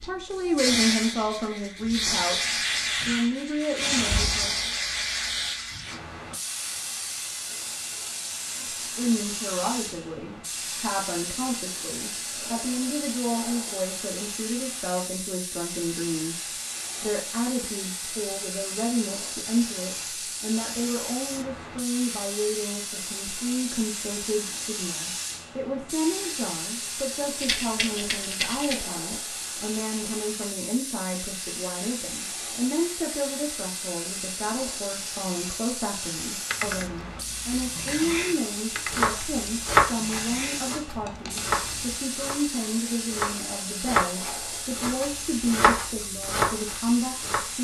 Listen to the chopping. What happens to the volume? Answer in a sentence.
The volume of the chopping goes down, then up.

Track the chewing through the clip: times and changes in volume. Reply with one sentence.
You can hear the chewing from 36.5 to 42.0 s, getting louder then quieter.